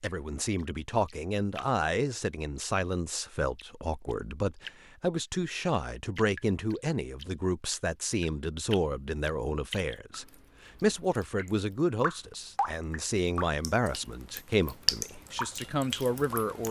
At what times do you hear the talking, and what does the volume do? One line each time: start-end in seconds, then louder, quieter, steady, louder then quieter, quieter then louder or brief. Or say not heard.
0.0-16.6 steady.